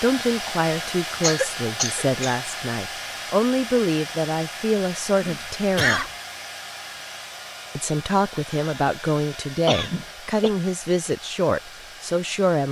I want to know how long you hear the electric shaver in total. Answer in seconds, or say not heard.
not heard.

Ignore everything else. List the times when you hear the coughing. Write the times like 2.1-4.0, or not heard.
1.2-2.4, 5.2-6.1, 9.7-10.5.